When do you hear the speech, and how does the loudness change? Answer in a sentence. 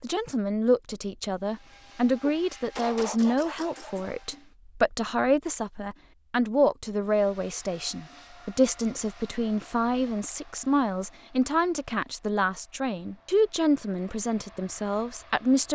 The speech can be heard from 0.0 to 15.7 s, at a steady volume.